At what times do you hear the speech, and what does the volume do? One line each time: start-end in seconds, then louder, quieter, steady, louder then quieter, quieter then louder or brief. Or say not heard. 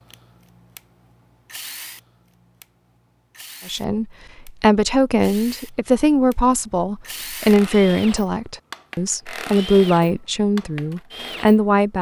3.6-11.9 steady.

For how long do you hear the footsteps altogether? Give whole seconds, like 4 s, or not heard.
not heard.